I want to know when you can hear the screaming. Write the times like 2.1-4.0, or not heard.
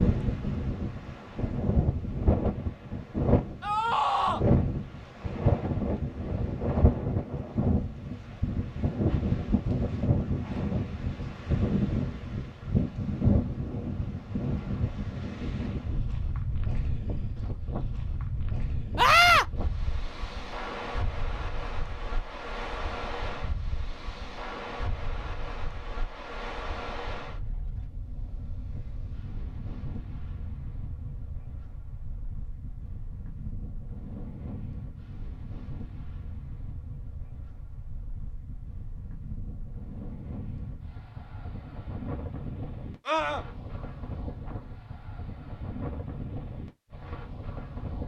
3.6-4.5, 18.9-19.4, 43.0-43.5.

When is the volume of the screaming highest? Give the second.
19 s.